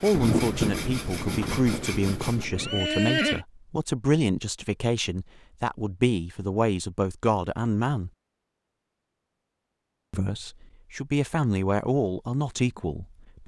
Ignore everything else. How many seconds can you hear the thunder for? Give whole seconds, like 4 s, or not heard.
3 s.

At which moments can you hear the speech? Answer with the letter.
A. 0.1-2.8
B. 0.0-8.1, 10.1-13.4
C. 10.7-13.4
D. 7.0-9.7
B.